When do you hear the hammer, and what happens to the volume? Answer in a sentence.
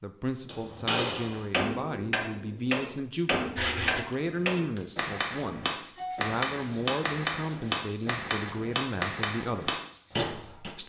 You can hear the hammer from 0.5 to 10.8 s, at a steady volume.